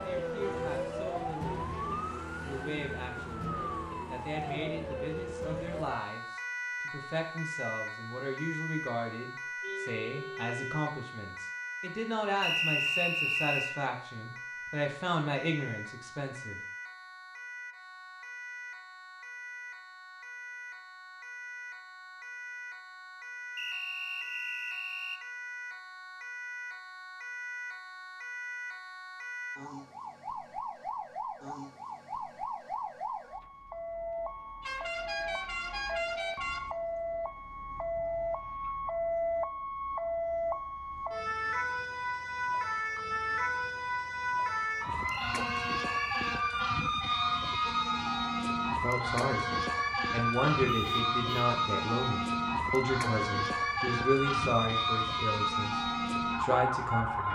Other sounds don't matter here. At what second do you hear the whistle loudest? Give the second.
13 s.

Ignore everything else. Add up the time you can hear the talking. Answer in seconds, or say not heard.
25 s.